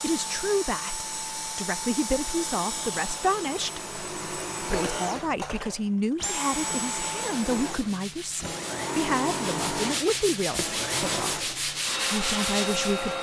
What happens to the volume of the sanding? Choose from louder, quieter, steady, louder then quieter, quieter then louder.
louder.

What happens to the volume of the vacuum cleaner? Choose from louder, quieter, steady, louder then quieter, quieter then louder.
steady.